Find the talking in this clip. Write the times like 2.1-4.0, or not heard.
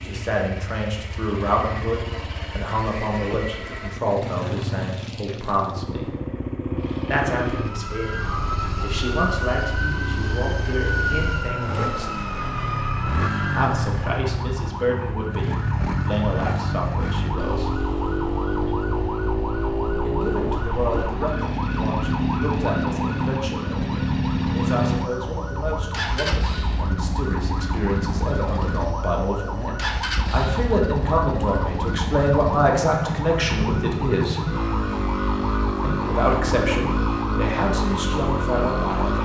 0.0-6.1, 7.0-12.2, 13.5-17.7, 20.1-34.5, 35.8-39.2.